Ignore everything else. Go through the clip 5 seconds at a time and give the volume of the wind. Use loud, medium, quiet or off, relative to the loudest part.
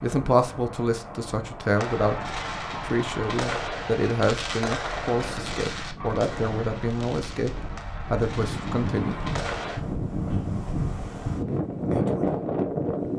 quiet, medium, loud.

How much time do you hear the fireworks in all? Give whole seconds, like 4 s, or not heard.
8 s.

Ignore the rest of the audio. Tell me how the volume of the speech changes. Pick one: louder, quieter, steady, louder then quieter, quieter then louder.
steady.